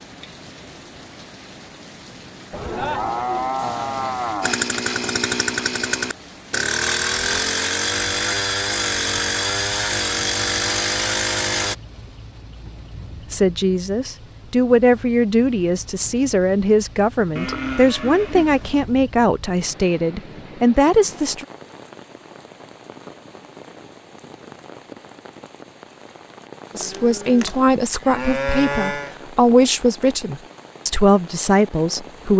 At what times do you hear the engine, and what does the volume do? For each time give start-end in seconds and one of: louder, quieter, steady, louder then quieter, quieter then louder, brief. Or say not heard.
4.4-11.8 steady.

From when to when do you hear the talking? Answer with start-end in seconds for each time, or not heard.
13.3-21.4, 26.8-32.3.